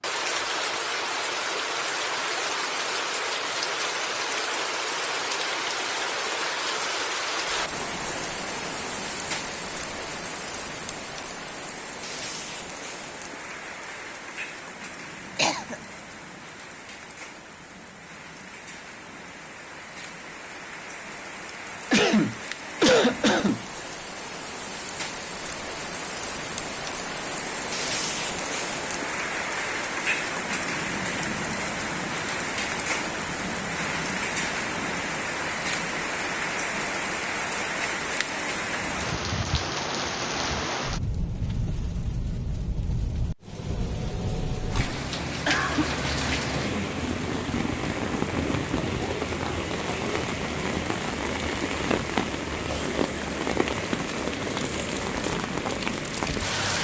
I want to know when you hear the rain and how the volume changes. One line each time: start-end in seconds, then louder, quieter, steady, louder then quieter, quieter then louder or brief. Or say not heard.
0.0-56.7 quieter then louder.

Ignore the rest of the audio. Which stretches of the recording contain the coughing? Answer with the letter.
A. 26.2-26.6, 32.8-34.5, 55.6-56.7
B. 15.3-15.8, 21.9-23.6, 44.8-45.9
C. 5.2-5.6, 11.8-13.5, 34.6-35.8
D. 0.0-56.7
B.